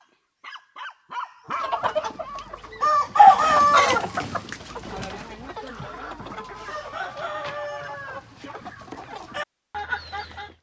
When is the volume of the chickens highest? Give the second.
3 s.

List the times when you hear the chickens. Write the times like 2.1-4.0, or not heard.
1.6-10.5.